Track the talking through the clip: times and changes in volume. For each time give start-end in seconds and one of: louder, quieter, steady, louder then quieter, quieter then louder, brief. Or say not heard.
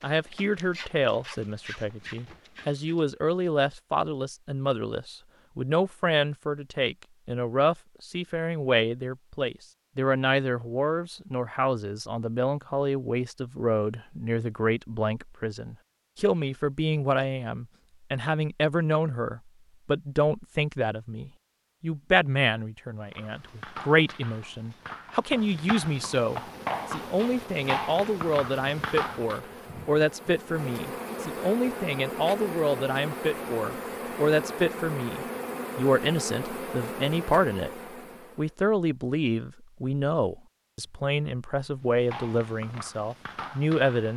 0.0-37.7 steady
38.4-44.1 steady.